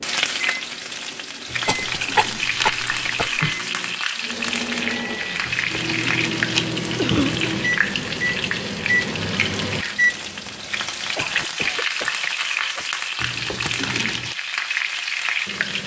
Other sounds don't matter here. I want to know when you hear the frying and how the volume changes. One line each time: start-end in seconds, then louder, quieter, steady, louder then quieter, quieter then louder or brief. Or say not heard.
0.0-15.8 steady.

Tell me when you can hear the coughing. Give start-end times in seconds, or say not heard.
1.6-3.4, 7.0-7.5, 11.2-12.9.